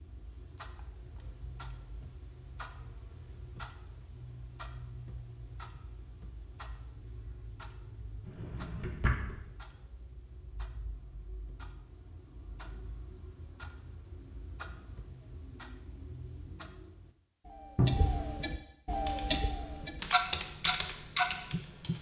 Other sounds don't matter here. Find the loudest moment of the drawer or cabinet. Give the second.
18 s.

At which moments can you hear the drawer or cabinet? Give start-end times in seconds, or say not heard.
8.2-9.3, 17.8-18.2.